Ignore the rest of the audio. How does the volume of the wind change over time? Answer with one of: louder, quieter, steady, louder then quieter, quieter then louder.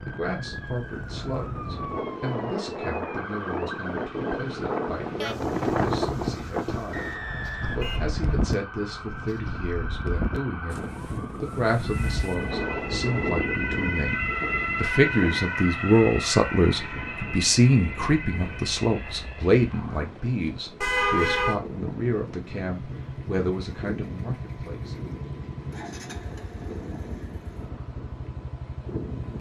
quieter.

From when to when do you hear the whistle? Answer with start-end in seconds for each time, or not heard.
6.9-8.6.